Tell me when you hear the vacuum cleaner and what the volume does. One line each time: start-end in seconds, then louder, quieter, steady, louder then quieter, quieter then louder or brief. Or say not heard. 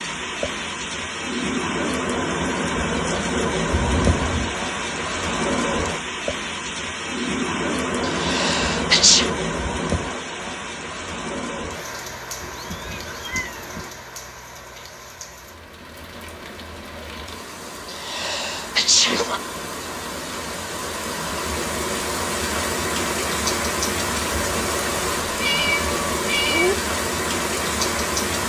not heard.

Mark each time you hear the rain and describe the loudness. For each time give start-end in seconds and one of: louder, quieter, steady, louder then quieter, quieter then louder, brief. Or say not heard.
0.0-28.4 quieter then louder.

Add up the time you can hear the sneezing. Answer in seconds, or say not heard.
3 s.